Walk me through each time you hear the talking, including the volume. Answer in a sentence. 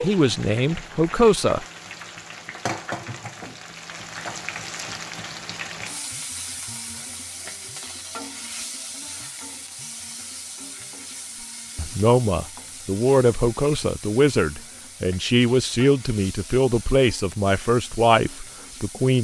You can hear the talking briefly from 0.0 to 1.6 s; and from 11.8 to 19.2 s, at a steady volume.